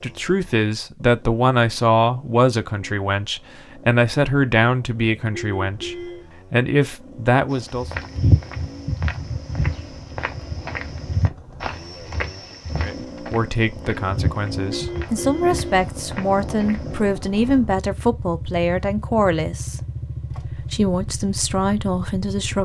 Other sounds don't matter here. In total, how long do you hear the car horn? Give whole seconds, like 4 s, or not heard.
2 s.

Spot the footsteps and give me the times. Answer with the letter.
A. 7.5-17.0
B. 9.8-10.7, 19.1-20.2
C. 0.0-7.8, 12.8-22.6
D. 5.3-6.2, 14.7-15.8
A.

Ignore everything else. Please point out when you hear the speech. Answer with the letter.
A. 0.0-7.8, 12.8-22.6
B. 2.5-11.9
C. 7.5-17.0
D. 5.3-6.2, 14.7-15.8
A.